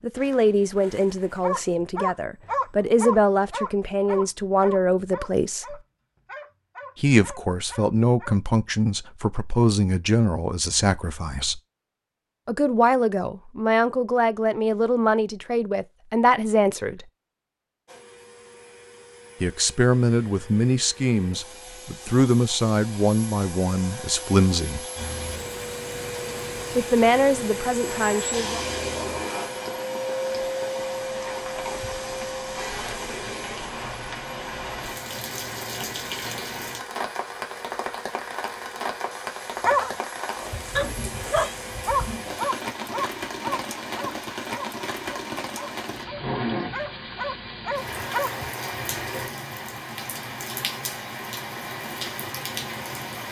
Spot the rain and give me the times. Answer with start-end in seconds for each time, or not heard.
24.9-53.2.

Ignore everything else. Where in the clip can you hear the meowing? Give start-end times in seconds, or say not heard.
40.8-41.5.